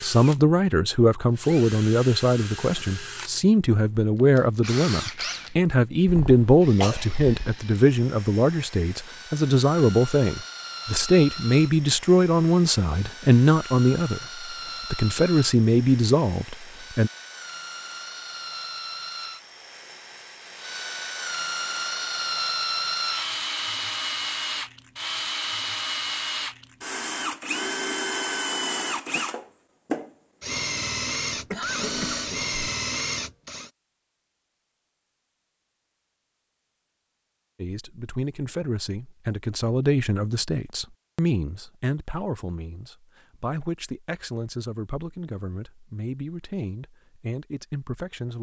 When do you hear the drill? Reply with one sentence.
You can hear the drill from 0.0 to 33.7 s.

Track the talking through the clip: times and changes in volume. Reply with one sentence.
You can hear the talking from 0.0 to 17.1 s, at a steady volume; and from 37.5 to 48.3 s, getting quieter.